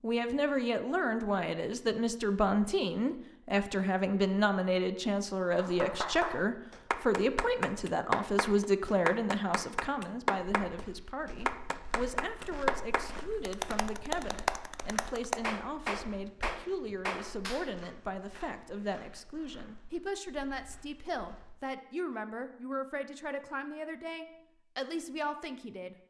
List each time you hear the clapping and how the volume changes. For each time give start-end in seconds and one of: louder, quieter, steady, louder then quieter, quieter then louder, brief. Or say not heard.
5.5-17.7 steady.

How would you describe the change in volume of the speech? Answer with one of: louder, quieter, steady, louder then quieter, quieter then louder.
quieter.